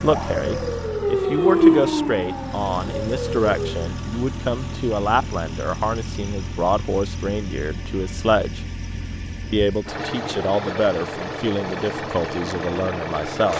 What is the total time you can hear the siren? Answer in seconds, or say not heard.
4 s.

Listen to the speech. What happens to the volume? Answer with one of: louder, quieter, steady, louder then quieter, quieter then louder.
steady.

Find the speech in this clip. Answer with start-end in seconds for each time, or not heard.
0.0-8.6, 9.5-13.5.